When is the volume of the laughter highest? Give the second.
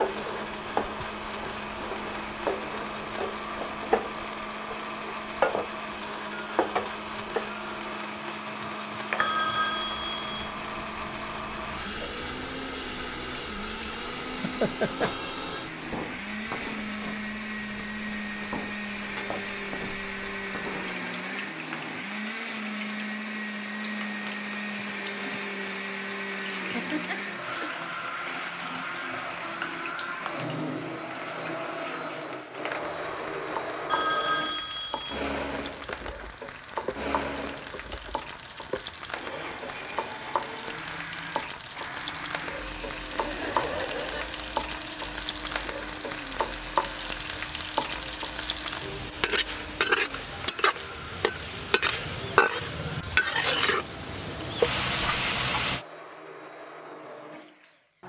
15 s.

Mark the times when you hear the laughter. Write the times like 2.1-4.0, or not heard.
14.3-15.2, 26.8-27.8, 43.1-44.5.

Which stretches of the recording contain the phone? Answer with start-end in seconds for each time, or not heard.
9.2-10.6, 33.9-35.3.